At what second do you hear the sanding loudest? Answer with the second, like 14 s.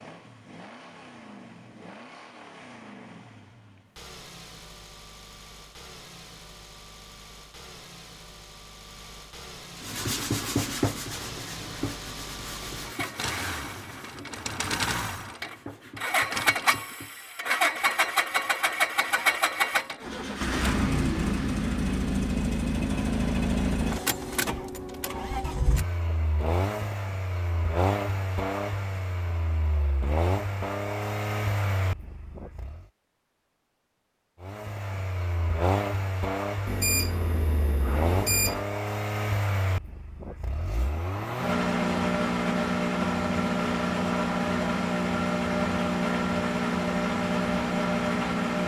11 s.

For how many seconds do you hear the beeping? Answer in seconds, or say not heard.
2 s.